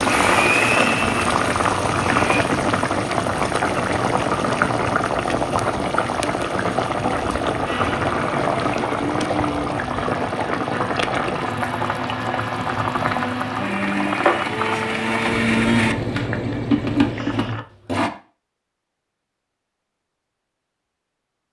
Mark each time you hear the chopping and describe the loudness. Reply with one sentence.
You can't hear the chopping here.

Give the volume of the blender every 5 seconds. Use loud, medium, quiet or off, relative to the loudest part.
loud, medium, medium, loud, off.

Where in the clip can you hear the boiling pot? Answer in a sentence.
The boiling pot can be heard from 0.0 to 17.6 s.